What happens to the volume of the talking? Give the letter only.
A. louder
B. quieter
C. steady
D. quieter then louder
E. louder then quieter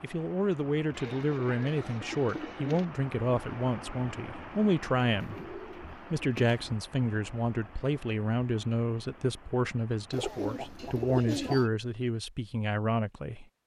C.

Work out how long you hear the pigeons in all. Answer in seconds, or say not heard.
5 s.